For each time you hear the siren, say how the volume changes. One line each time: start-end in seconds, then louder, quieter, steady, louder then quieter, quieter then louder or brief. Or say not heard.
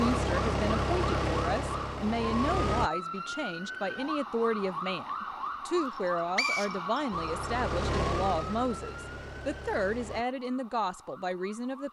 0.0-11.8 quieter.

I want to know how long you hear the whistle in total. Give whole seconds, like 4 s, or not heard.
2 s.